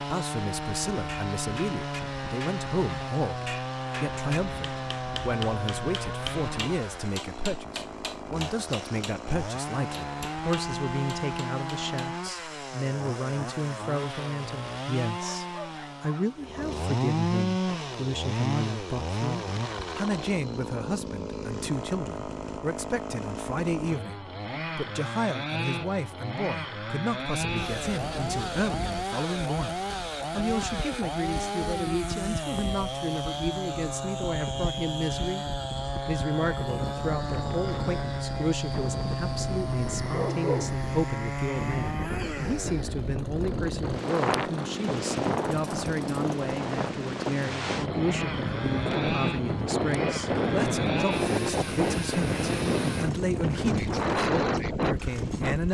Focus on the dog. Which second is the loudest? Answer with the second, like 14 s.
40 s.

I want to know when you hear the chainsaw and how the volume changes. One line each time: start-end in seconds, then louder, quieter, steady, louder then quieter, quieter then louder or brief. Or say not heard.
0.0-55.6 steady.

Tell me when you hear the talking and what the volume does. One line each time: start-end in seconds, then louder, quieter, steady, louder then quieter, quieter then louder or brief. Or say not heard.
0.0-35.5 steady
36.0-55.6 steady.